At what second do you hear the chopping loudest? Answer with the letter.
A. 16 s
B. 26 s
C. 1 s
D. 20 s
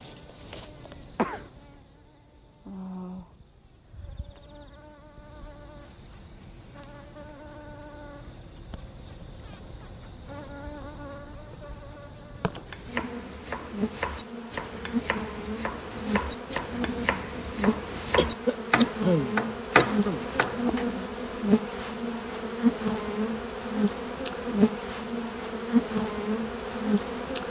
D.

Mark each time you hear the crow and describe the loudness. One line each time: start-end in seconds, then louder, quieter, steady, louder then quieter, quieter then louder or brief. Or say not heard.
not heard.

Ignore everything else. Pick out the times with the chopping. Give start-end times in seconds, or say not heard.
12.7-20.9.